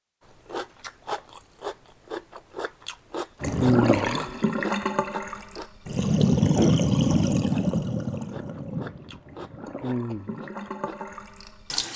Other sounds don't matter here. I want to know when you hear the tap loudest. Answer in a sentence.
The volume of the tap peaks at 7 seconds.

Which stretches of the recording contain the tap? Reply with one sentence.
The tap can be heard from 3.4 to 11.9 s.